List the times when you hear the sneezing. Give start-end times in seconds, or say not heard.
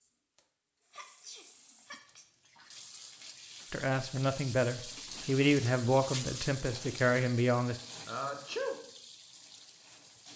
0.9-2.2, 8.1-8.8.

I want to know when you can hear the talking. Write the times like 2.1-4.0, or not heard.
3.7-7.8.